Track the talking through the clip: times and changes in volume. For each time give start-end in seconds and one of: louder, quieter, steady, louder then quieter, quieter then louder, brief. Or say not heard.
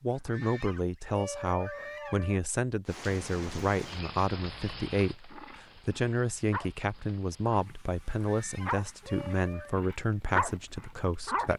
0.0-11.5 steady.